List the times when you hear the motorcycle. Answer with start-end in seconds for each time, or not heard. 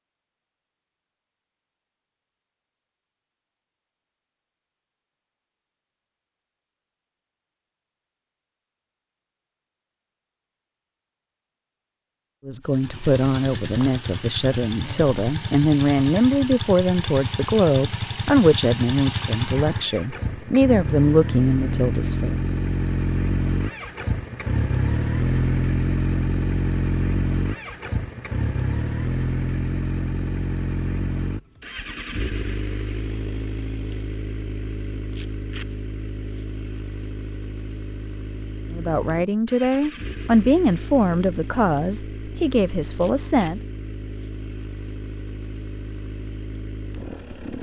12.6-47.5.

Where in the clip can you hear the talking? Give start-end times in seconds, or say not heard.
12.4-22.4, 38.7-43.6.